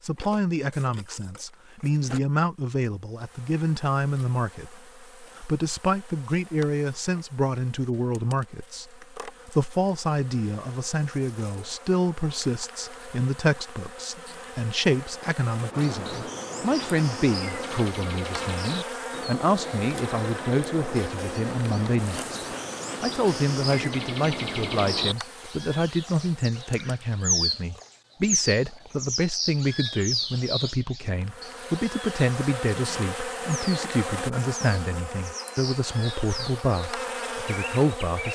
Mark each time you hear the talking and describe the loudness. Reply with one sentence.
The talking can be heard from 0.0 to 38.3 s, at a steady volume.